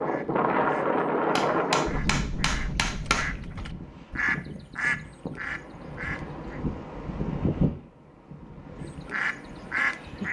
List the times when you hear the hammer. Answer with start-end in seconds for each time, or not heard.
1.4-3.3.